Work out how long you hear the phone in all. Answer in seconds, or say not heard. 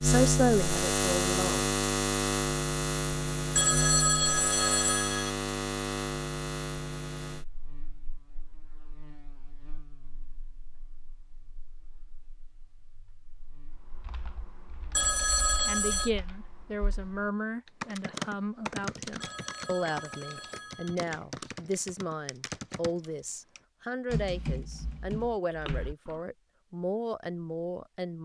5 s.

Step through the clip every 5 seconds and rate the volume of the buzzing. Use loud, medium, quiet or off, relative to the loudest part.
loud, medium, quiet, off, off, off.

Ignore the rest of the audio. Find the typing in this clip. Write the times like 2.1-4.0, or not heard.
13.8-26.2.